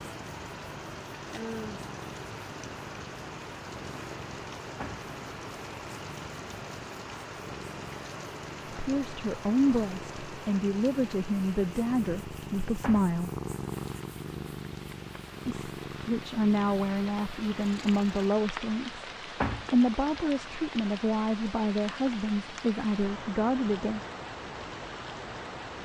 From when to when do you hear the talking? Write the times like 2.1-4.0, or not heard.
8.7-13.3, 15.4-19.1, 19.7-24.0.